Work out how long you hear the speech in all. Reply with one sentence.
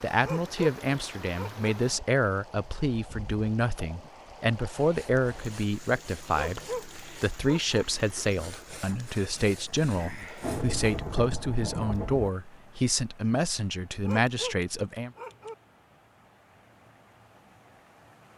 The speech can be heard for 15 seconds in total.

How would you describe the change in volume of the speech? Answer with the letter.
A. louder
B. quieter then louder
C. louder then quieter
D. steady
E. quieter
D.